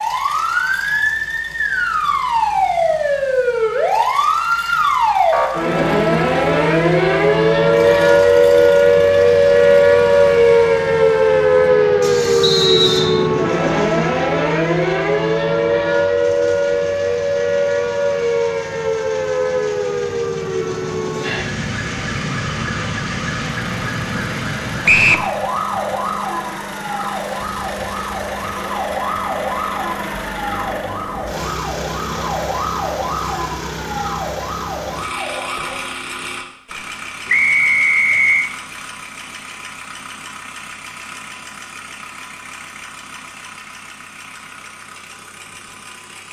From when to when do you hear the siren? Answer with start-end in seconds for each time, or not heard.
0.0-35.8.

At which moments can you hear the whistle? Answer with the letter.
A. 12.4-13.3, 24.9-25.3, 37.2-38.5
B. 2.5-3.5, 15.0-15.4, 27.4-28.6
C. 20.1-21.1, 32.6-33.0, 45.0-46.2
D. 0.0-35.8
A.